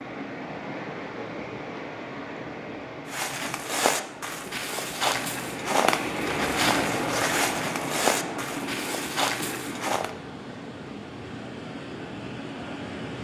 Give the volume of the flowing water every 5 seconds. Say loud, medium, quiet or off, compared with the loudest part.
medium, loud, medium.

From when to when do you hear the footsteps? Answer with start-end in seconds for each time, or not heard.
3.0-10.1.